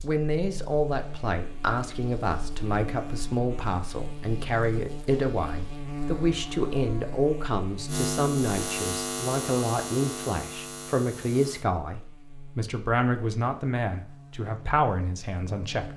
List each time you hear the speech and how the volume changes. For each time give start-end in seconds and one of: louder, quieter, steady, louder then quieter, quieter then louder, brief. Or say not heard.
0.0-15.9 steady.